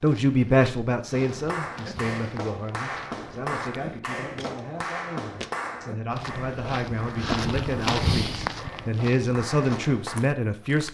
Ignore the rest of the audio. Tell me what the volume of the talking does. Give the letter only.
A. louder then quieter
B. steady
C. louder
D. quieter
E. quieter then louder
E.